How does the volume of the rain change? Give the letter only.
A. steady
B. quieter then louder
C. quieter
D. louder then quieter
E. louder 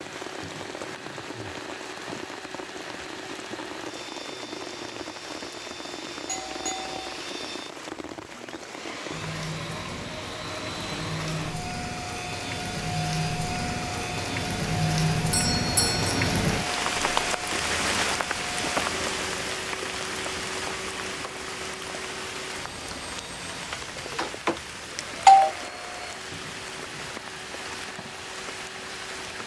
D.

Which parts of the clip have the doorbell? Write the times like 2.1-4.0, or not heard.
6.2-7.0, 15.3-16.3, 23.7-25.5.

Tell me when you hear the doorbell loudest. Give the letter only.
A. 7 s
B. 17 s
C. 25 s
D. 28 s
C.